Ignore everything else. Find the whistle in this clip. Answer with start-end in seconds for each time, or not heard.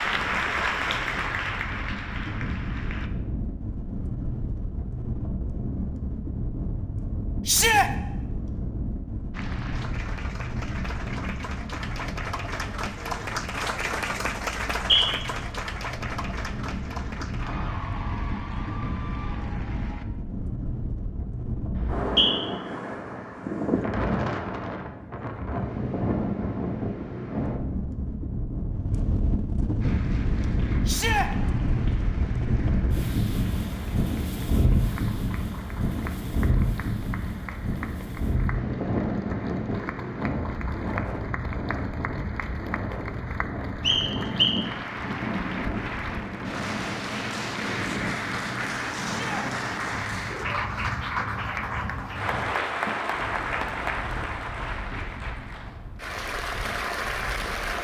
14.6-15.1, 21.8-22.3, 43.8-44.6.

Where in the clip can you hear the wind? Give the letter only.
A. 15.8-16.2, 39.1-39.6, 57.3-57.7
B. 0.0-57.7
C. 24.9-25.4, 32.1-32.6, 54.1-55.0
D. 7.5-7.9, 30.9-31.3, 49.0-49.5
B.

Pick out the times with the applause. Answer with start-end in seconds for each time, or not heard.
0.0-3.1, 9.3-20.1, 29.8-57.7.